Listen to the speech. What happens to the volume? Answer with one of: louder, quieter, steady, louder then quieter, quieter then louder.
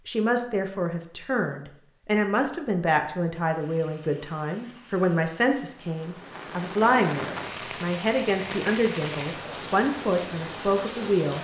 steady.